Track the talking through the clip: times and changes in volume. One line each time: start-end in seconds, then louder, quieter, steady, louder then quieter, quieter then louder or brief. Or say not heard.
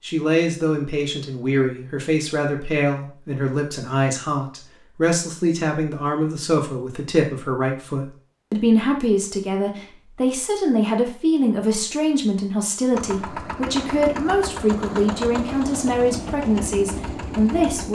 0.0-17.9 steady.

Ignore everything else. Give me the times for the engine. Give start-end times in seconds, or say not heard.
12.9-17.9.